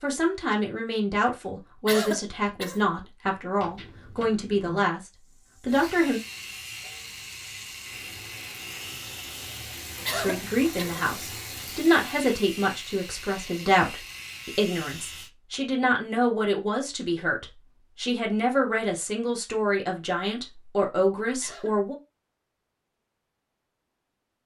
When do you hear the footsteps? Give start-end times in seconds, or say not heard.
not heard.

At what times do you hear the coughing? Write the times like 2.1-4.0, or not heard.
1.9-2.8, 10.1-11.1, 21.4-21.8.